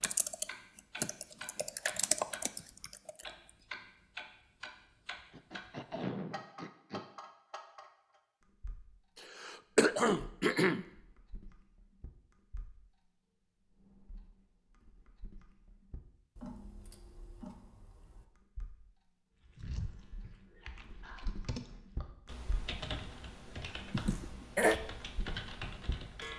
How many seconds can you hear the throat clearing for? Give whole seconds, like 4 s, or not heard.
4 s.